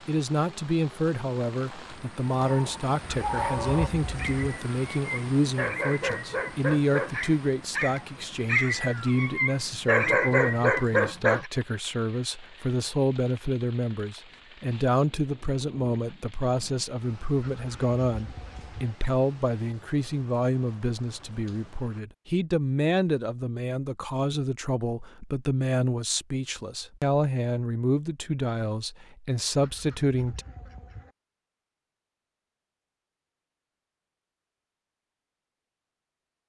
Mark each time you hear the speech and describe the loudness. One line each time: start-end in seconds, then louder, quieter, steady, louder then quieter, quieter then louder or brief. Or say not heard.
0.1-30.4 steady.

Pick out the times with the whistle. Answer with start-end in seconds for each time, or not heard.
not heard.